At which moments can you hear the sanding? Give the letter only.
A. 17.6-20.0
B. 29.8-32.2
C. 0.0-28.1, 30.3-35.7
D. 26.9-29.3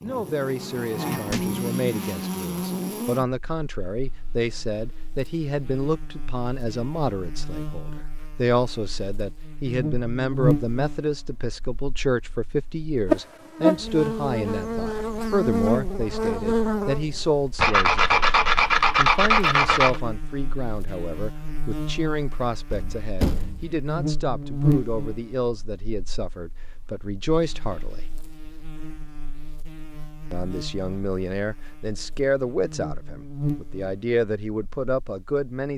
A.